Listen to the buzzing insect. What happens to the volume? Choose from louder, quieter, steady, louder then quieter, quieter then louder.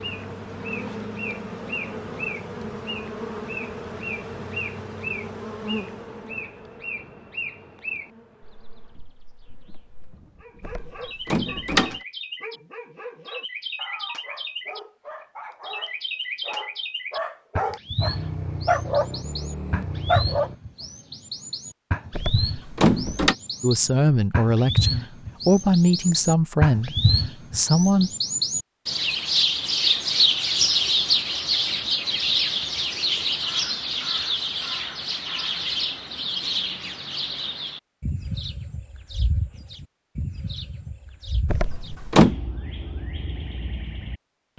quieter.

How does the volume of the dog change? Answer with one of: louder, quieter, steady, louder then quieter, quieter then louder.
louder.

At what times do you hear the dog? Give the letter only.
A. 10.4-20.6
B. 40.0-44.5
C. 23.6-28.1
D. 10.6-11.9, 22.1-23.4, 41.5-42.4
A.